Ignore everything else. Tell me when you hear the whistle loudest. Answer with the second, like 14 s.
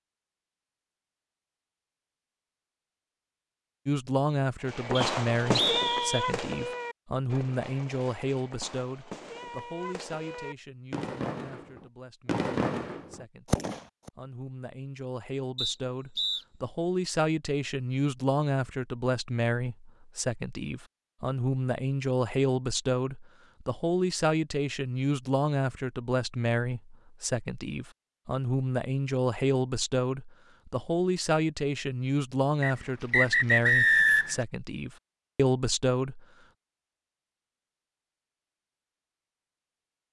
34 s.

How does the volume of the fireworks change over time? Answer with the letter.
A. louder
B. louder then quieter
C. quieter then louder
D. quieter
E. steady
C.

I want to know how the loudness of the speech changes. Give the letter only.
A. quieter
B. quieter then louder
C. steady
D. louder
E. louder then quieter
B.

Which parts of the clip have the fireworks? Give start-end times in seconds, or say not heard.
4.7-14.1.